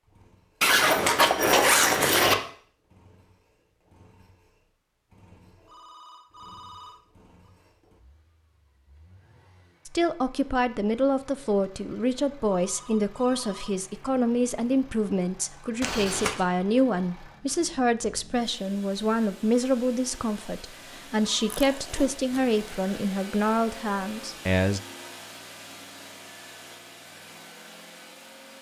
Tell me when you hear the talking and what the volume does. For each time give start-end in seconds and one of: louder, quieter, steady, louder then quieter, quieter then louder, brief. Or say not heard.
9.8-24.8 steady.